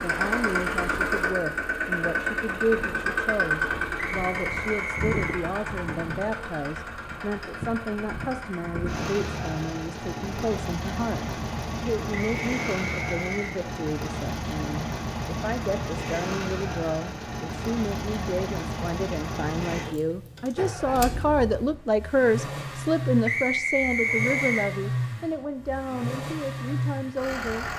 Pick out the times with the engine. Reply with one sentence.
You can hear the engine from 0.0 to 27.7 s.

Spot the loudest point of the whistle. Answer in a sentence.
The volume of the whistle peaks at 24 seconds.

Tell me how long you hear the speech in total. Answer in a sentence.
You can hear the speech for 28 seconds altogether.